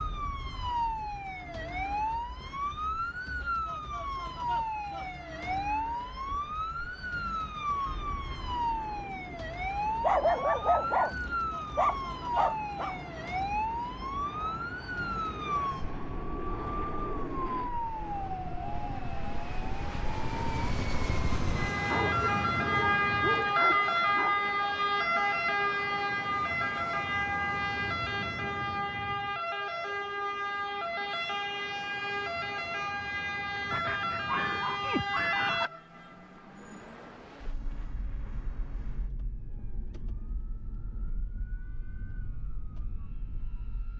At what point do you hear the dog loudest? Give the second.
10 s.